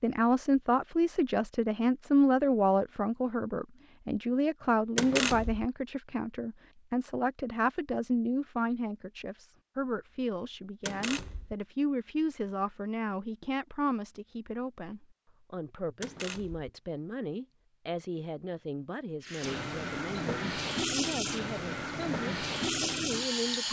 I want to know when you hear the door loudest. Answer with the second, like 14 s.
5 s.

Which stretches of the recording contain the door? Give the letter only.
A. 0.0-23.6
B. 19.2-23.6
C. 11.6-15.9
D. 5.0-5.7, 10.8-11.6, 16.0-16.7
D.